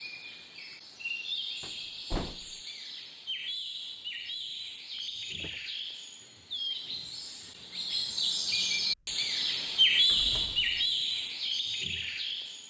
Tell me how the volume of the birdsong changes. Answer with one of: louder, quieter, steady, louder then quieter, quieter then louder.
louder.